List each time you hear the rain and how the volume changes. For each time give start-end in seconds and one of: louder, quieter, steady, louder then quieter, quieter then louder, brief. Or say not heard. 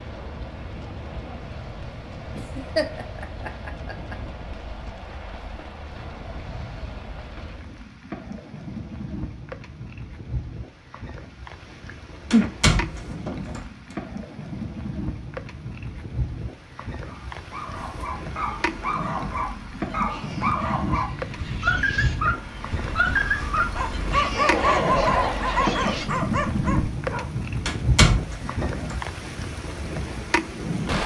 0.0-31.0 louder.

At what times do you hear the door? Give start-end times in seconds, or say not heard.
12.3-13.7, 27.6-29.0.